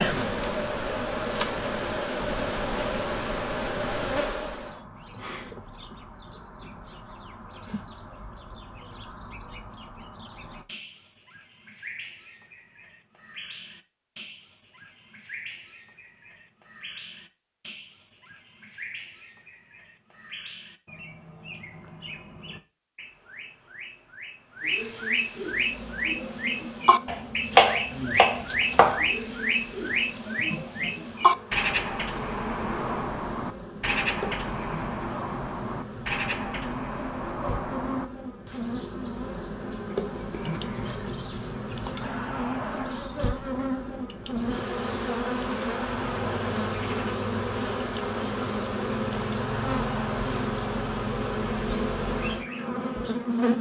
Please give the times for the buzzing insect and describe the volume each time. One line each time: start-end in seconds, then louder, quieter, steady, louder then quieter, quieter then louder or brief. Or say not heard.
0.0-4.8 steady
25.4-53.5 louder.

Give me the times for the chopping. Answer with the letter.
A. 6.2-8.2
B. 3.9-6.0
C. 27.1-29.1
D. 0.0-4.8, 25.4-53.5
C.